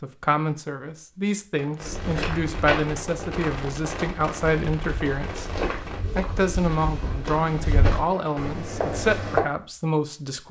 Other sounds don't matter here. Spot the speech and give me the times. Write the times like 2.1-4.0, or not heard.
0.0-10.4.